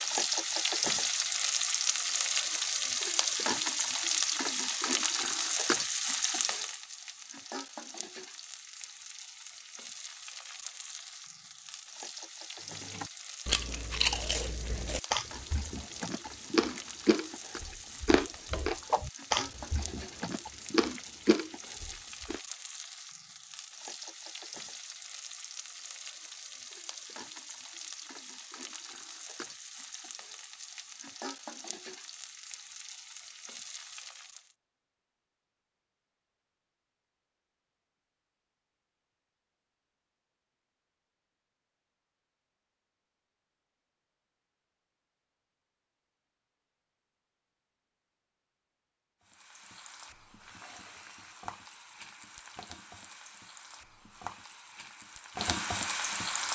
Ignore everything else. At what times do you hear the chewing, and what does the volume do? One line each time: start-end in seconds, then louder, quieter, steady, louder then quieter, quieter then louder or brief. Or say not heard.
12.8-22.4 steady.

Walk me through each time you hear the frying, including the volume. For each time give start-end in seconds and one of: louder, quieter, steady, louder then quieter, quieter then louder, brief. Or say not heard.
0.0-34.5 quieter
49.2-56.5 louder.